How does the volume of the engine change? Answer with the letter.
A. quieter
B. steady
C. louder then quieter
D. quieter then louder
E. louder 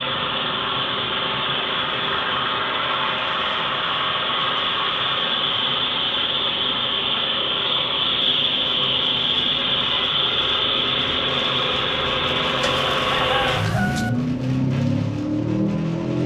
B.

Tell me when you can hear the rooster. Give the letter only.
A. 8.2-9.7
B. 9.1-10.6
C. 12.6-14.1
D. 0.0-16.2
C.